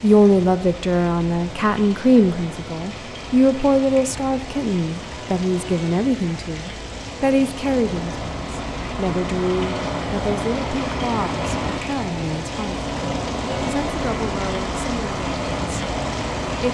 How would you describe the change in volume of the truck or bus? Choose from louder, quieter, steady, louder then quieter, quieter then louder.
louder.